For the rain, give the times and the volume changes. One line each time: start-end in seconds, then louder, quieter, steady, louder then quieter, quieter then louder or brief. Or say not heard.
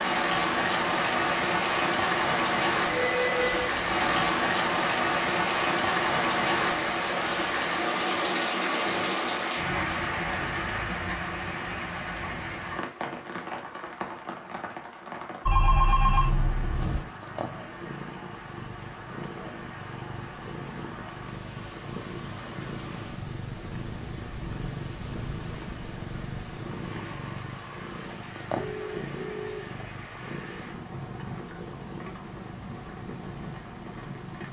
0.0-34.4 quieter.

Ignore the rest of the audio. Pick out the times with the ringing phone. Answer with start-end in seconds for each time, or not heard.
2.9-4.3, 15.4-17.0, 28.6-29.7.